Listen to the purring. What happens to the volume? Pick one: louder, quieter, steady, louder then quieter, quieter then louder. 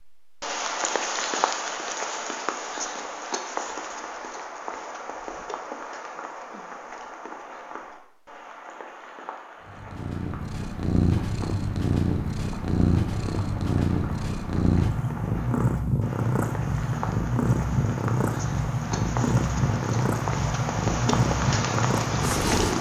steady.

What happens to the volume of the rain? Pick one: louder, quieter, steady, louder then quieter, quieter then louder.
quieter then louder.